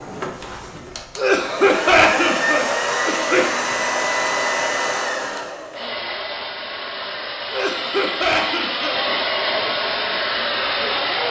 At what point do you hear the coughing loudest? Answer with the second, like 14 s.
2 s.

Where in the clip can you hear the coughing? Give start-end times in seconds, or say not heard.
1.1-3.5, 7.5-9.0.